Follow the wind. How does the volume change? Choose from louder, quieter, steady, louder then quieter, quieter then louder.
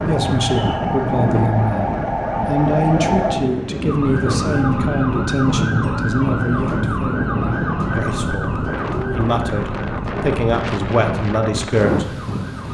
steady.